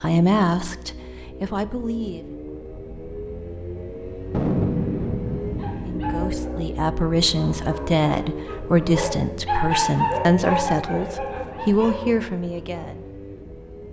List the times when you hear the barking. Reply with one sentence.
The barking can be heard from 5.4 to 12.8 s.